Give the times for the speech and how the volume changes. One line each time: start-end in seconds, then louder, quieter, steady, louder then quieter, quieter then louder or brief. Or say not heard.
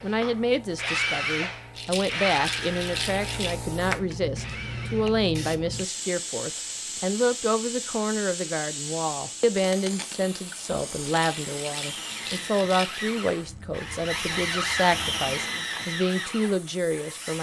0.0-17.3 steady.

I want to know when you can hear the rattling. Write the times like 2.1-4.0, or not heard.
1.8-3.5, 11.1-13.1.